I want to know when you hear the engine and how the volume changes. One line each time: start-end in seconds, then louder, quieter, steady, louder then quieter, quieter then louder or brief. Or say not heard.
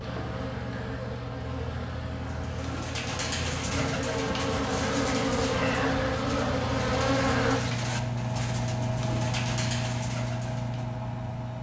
0.0-11.5 louder.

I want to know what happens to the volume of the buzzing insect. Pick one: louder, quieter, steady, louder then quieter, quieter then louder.
louder.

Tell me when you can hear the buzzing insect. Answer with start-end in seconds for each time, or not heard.
0.0-7.6.